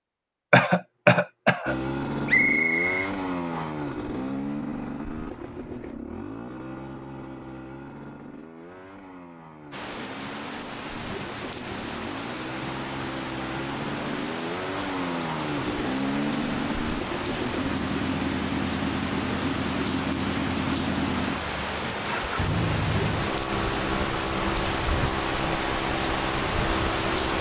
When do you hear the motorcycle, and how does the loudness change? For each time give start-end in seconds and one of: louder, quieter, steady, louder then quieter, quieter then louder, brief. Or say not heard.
1.6-27.3 quieter then louder.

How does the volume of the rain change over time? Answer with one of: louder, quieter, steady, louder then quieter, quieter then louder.
louder.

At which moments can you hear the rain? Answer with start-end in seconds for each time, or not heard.
9.7-27.3.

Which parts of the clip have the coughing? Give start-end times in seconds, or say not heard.
0.5-1.8.